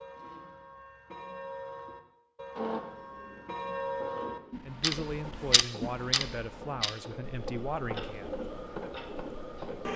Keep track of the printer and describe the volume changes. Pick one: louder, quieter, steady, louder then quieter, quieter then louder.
louder.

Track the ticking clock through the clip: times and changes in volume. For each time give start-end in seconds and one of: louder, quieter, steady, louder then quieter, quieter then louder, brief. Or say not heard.
0.0-9.9 louder then quieter.